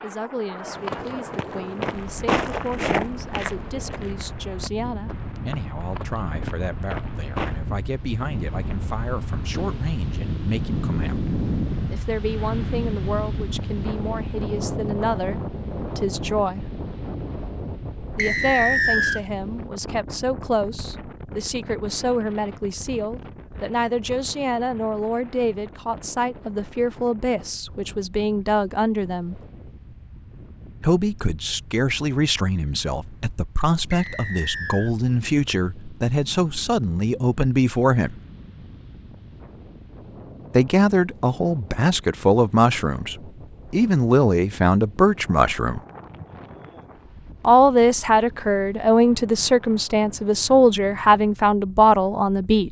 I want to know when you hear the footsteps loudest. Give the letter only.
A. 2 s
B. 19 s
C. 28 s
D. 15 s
A.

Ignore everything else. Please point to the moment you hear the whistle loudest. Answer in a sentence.
The loudest moment of the whistle is at 19 seconds.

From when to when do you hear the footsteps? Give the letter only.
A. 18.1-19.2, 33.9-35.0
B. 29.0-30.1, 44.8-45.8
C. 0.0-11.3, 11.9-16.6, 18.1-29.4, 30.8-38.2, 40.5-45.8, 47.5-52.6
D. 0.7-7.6
D.